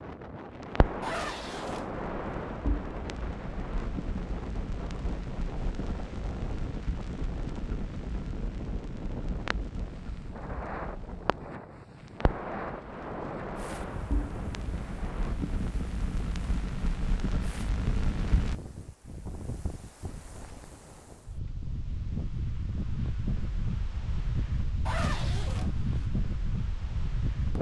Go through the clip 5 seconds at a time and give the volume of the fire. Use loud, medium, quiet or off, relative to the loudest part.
loud, medium, medium, loud, off, off.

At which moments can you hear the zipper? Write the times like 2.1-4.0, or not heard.
1.0-1.9, 24.9-26.1.